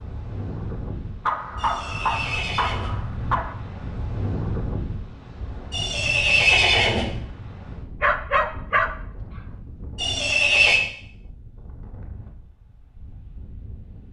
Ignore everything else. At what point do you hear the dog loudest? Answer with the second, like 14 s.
8 s.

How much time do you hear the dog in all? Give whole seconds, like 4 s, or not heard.
3 s.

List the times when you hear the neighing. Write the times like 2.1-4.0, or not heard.
1.6-2.9, 5.7-7.0, 9.9-10.8.